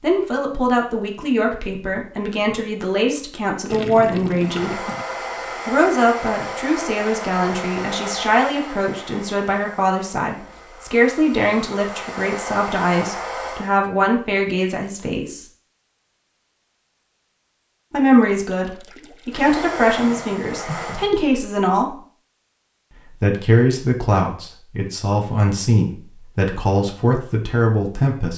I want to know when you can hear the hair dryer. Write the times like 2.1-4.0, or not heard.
4.3-13.8, 19.3-21.1.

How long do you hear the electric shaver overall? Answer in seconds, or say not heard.
not heard.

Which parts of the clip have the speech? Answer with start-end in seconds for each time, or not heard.
0.0-4.8, 5.7-15.4, 17.9-21.9, 23.2-28.3.